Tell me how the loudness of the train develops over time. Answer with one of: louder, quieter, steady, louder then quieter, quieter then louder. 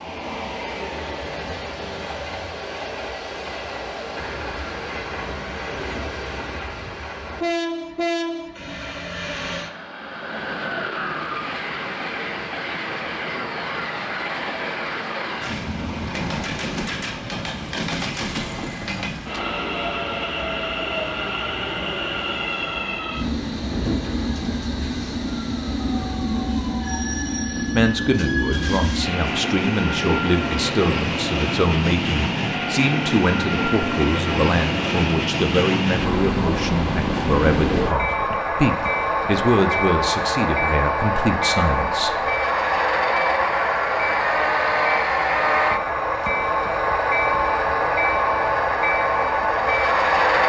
louder.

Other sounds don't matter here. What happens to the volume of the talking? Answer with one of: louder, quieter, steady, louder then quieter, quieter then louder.
steady.